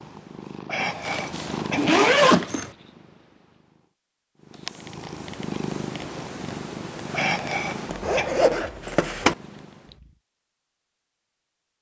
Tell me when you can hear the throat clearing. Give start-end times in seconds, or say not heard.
0.7-1.9, 7.1-8.3.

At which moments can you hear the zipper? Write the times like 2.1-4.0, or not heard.
0.8-2.7, 7.9-9.3.